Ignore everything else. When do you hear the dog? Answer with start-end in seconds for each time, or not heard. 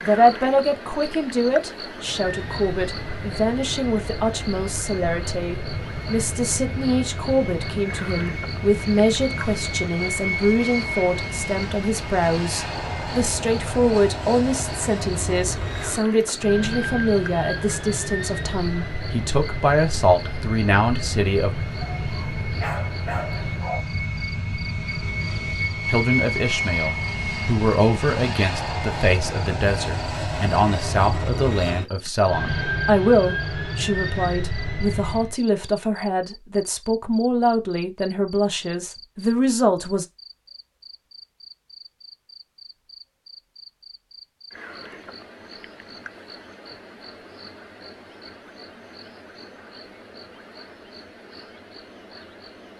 21.8-23.8.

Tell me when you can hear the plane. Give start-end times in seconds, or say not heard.
2.0-35.4.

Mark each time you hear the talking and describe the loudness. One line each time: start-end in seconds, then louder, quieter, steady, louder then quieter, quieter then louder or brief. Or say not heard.
0.0-21.6 steady
25.9-40.0 steady.